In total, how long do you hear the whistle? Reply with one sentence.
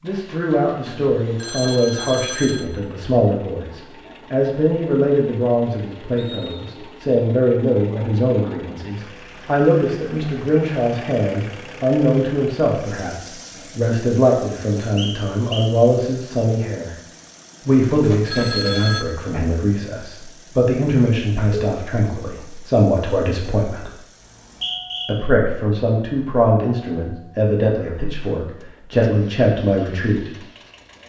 You can hear the whistle for 2 seconds altogether.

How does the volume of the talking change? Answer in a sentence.
The loudness of the talking stays about the same.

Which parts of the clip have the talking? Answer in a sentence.
The talking can be heard from 0.0 to 16.9 s, from 17.6 to 23.9 s and from 25.1 to 30.3 s.